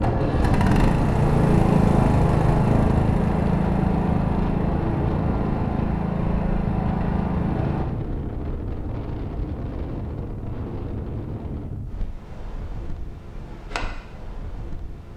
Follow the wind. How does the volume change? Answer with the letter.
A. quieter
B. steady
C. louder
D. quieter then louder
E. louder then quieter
A.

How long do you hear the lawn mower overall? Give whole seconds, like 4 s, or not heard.
8 s.